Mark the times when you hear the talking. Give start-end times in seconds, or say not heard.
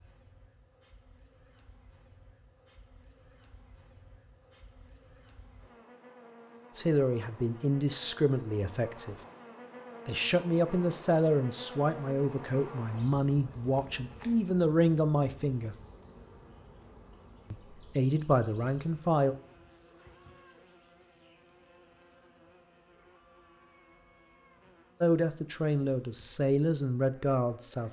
6.8-9.2, 10.1-15.8, 17.5-19.4, 25.0-27.8.